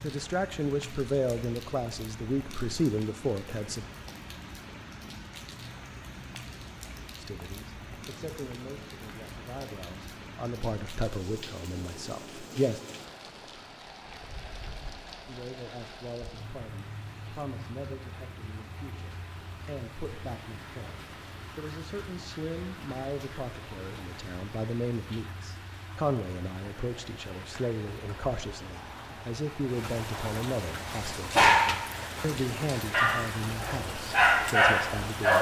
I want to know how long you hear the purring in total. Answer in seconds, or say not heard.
not heard.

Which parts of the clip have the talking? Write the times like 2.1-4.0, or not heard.
0.0-3.9, 7.2-12.8, 15.2-35.3.